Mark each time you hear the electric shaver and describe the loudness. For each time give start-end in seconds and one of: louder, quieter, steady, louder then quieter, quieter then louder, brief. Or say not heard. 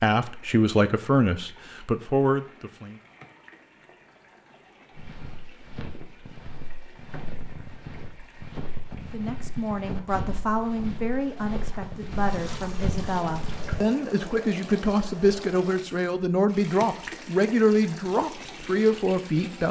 not heard.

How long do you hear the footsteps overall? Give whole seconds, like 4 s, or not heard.
9 s.